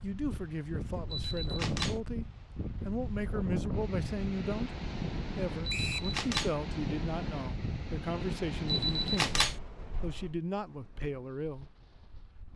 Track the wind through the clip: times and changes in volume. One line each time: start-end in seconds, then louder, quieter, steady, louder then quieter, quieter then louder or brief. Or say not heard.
0.0-12.5 quieter.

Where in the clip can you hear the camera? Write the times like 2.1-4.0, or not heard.
1.1-2.0, 5.7-6.5, 8.7-9.6.